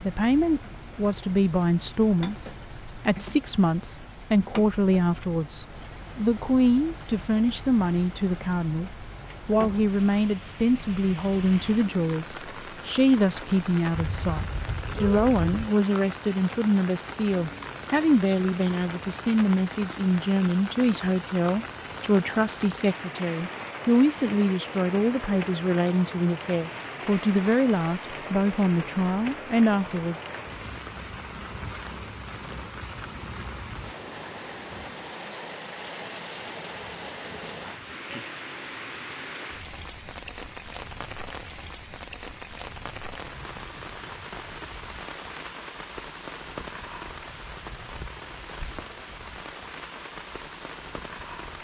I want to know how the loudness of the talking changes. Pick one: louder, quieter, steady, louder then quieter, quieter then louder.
steady.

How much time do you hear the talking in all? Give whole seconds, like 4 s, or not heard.
30 s.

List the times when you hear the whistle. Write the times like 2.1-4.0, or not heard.
not heard.